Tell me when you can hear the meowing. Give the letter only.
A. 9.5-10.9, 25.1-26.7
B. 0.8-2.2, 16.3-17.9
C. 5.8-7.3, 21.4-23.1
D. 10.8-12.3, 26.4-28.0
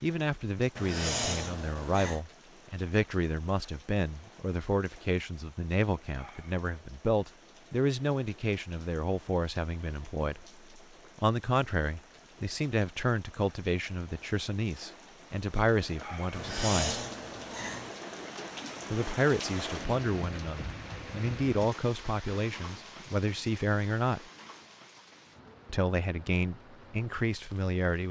B.